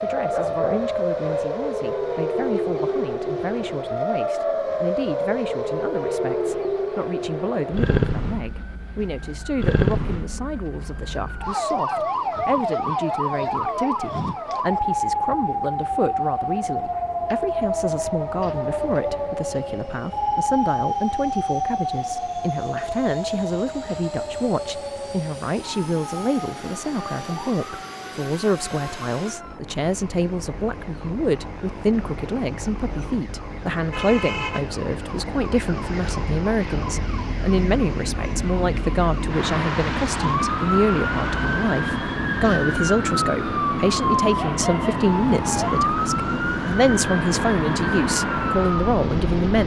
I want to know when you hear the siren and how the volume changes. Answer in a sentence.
The siren can be heard from 0.0 to 49.6 s, getting quieter then louder.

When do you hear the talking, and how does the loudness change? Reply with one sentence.
You can hear the talking from 0.0 to 49.6 s, getting louder.